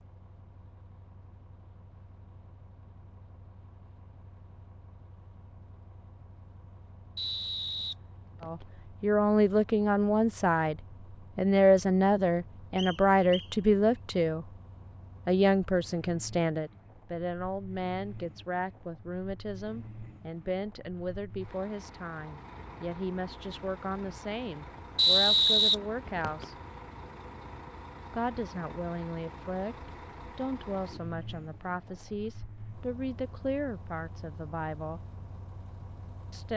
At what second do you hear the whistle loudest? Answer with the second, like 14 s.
25 s.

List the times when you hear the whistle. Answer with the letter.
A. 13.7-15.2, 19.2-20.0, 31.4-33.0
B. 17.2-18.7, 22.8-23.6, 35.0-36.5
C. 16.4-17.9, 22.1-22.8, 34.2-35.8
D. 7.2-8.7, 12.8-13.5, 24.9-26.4
D.